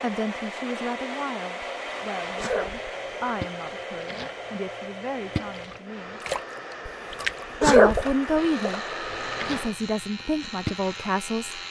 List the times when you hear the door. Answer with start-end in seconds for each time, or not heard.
not heard.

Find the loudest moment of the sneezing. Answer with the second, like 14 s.
8 s.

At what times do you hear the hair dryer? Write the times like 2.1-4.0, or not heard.
0.0-9.8.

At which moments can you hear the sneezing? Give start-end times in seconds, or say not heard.
1.6-2.9, 6.8-8.2.